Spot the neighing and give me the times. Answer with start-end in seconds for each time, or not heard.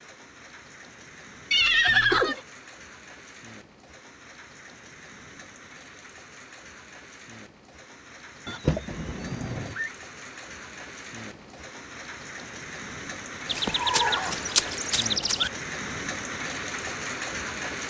1.5-2.4, 8.4-9.9, 13.4-15.5.